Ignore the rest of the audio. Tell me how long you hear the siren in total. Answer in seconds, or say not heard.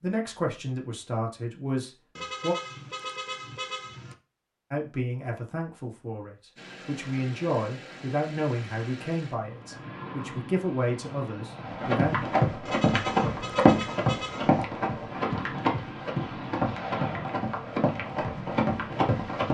not heard.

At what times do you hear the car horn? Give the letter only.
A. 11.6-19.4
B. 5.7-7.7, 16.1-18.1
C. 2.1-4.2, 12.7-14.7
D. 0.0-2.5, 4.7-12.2
C.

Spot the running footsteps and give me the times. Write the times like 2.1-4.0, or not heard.
11.6-19.4.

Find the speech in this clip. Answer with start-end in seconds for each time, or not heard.
0.0-2.5, 4.7-12.2.